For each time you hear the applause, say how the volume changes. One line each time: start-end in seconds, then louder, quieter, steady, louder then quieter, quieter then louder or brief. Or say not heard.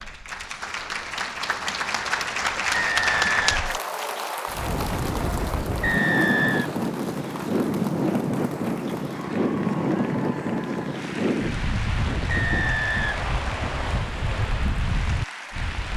0.0-15.9 quieter.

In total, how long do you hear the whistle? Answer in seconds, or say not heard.
4 s.